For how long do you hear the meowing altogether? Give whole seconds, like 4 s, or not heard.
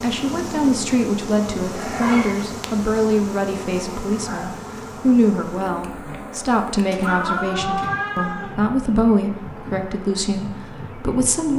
2 s.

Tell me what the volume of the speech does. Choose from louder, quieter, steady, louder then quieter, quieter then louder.
steady.